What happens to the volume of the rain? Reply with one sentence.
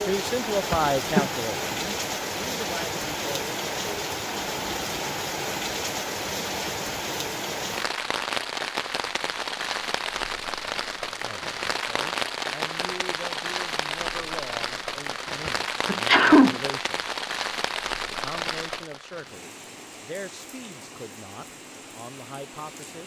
The loudness of the rain goes down.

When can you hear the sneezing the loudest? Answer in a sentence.
The volume of the sneezing peaks at 16 seconds.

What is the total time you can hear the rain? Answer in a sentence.
The rain can be heard for 23 seconds in total.